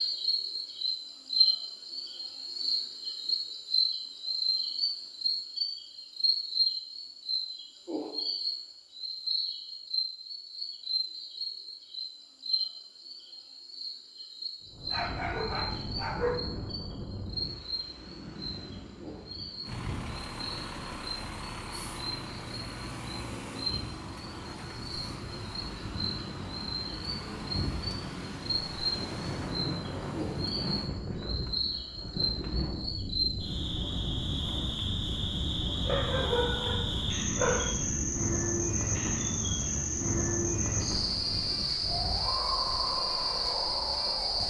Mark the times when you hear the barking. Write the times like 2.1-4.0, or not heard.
14.9-16.4, 35.9-37.8.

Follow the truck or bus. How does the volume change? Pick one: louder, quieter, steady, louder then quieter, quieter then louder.
steady.